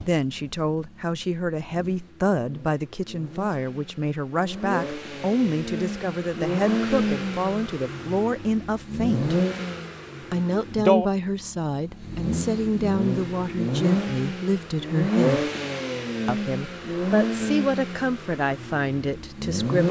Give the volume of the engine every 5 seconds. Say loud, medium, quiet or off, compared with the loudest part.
quiet, loud, loud, loud.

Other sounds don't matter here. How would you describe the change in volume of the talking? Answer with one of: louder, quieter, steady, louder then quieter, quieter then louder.
steady.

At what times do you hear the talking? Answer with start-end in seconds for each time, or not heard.
0.0-9.4, 10.3-15.5, 16.2-19.8.